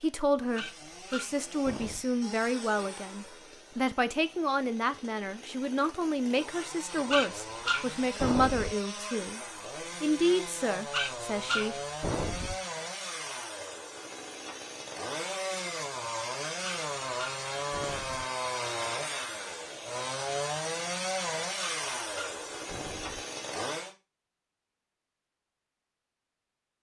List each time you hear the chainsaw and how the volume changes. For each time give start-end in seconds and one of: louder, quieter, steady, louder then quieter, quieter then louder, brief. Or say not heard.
0.0-23.9 louder.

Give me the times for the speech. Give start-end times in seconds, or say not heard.
0.0-9.4, 10.0-11.8.